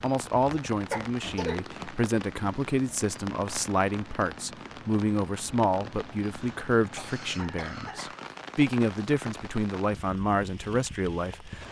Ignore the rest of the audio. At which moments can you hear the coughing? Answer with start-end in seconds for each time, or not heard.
0.9-1.6, 6.3-8.2.